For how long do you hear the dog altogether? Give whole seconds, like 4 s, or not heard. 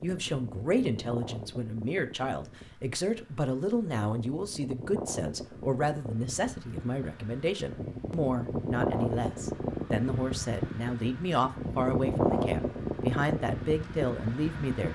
not heard.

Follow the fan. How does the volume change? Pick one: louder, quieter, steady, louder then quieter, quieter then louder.
louder.